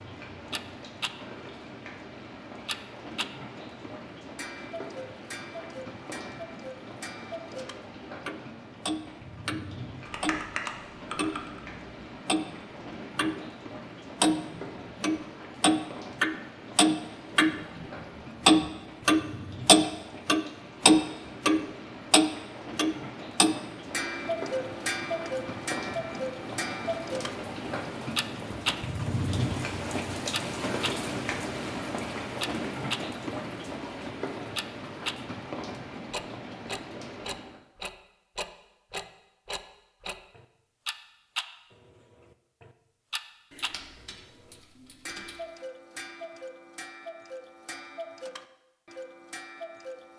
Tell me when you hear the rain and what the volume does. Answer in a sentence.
You can hear the rain from 0.0 to 37.6 s, getting louder.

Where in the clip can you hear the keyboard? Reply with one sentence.
You can hear the keyboard from 10.1 to 11.6 s and from 43.5 to 45.4 s.